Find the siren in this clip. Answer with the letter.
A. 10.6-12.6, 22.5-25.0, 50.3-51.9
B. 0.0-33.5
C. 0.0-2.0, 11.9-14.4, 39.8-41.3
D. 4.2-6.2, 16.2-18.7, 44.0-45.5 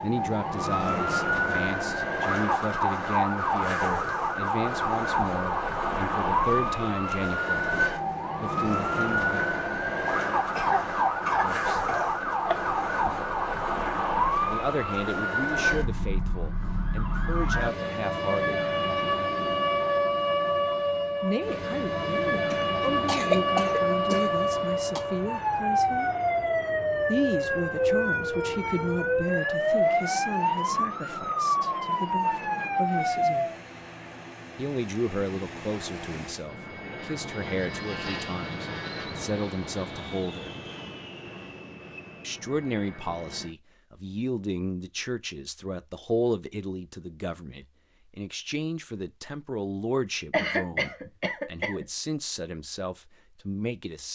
B.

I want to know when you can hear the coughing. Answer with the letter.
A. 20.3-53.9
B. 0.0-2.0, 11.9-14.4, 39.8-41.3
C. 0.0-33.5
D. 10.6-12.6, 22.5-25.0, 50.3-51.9
D.